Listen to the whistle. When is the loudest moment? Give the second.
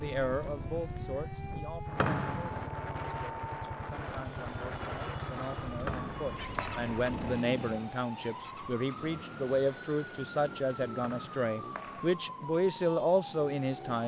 2 s.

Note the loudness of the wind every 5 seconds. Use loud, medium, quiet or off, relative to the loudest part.
loud, loud, off.